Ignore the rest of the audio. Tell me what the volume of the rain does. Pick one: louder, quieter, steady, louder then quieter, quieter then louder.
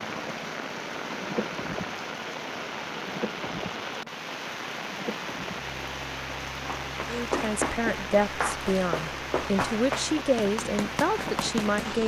steady.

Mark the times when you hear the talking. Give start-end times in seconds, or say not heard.
7.0-12.0.